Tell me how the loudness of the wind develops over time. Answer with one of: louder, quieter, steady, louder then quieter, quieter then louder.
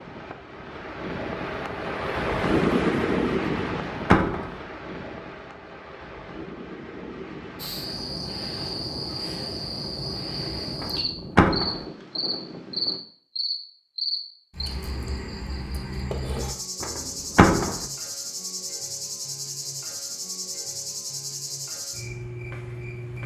quieter.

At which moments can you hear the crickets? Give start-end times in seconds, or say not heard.
7.5-23.2.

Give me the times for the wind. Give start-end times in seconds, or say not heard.
0.0-13.0.